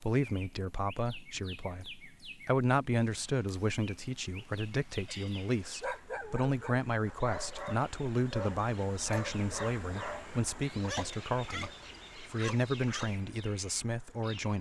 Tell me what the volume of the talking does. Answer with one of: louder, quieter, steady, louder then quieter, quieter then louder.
steady.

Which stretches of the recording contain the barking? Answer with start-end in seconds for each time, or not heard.
5.0-13.2.